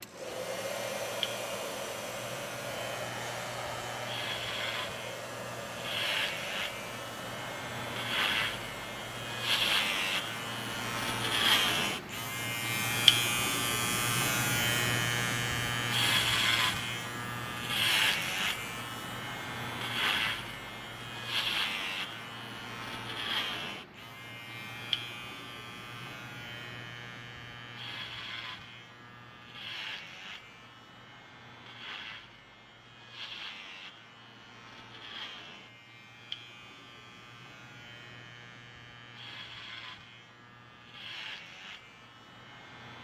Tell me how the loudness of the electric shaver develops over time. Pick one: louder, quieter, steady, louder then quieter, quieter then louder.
louder then quieter.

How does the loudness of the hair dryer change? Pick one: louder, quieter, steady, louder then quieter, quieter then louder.
quieter.